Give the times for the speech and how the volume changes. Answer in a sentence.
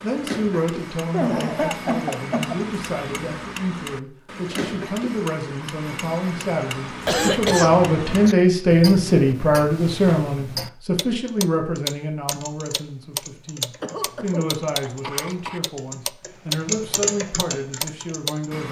You can hear the speech from 0.0 to 18.6 s, getting louder then quieter.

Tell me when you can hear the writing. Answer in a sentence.
The writing can't be heard in this clip.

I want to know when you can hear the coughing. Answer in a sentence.
You can hear the coughing from 1.1 to 2.9 s, from 7.0 to 8.3 s and from 13.8 to 15.6 s.